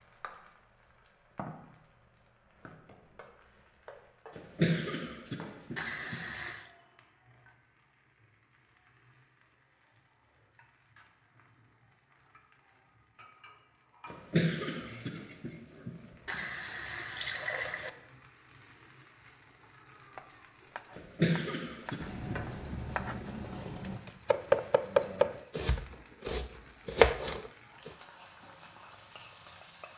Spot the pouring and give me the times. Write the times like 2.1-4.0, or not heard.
5.8-6.7, 16.2-17.9, 22.0-24.0.